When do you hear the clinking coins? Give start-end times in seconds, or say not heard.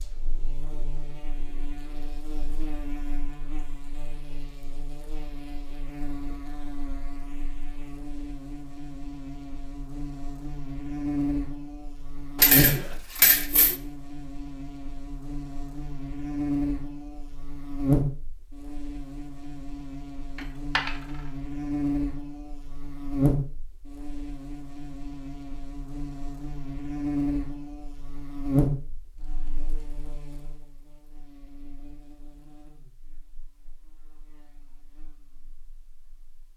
12.3-13.8, 20.4-20.9.